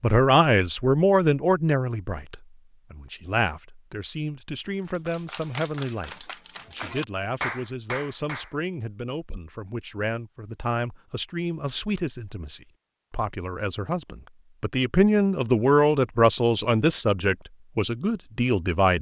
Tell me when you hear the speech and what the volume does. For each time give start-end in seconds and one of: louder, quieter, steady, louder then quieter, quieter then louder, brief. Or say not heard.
0.0-18.9 quieter then louder.